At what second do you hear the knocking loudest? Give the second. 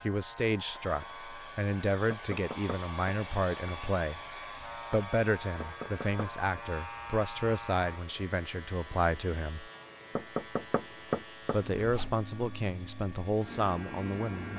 11 s.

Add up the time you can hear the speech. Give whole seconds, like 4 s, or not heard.
13 s.